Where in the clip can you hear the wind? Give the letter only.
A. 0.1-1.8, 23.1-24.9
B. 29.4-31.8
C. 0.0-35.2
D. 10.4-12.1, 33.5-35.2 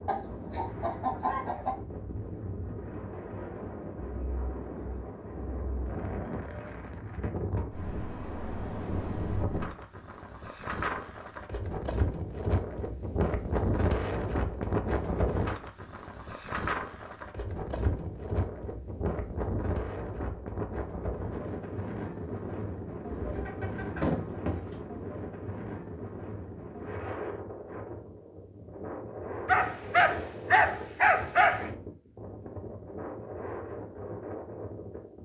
C.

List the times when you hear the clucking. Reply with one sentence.
You can hear the clucking from 0.1 to 1.8 s and from 23.1 to 24.9 s.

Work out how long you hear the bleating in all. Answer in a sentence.
You can't hear the bleating here.